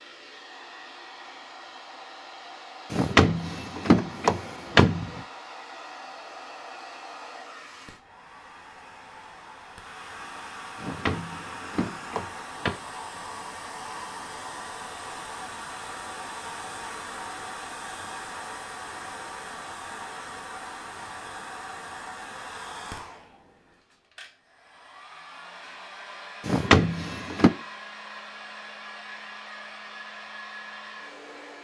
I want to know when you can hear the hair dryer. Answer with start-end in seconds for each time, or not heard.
0.0-31.5.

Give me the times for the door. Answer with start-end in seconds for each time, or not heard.
2.9-5.2, 10.8-12.8, 26.4-27.5.